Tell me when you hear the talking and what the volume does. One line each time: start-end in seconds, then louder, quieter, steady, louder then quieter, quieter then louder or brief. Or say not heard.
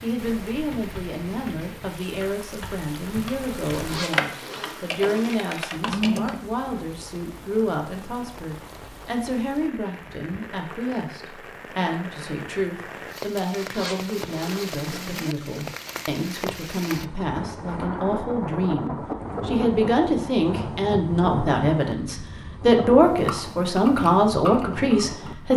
0.0-25.5 louder.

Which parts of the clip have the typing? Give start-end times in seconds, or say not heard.
0.1-6.4, 23.1-25.4.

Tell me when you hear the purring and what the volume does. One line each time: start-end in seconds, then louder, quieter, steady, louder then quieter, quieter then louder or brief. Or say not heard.
not heard.